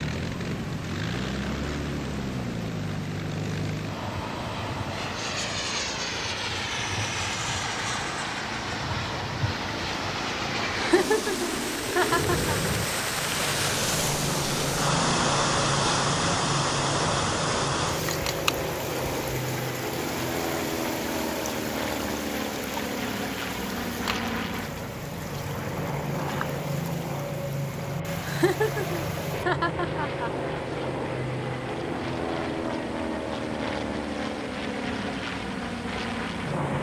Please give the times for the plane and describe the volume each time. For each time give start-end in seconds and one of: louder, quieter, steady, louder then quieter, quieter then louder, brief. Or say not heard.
0.0-36.7 steady.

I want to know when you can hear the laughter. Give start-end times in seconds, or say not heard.
10.7-12.6, 28.2-30.8.